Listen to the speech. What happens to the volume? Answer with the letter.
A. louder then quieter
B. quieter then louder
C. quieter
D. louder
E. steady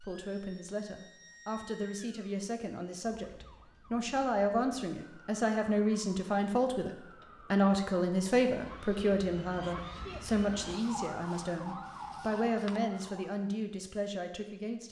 A.